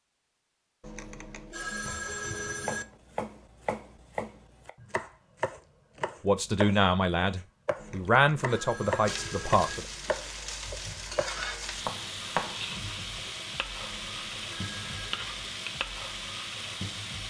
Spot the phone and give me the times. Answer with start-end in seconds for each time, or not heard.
0.8-2.9, 7.8-9.8, 13.8-15.3.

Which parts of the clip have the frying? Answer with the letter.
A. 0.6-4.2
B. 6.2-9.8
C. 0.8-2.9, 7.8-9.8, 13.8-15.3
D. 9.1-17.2
D.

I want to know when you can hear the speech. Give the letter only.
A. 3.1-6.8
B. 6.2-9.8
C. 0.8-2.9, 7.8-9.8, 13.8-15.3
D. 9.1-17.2
B.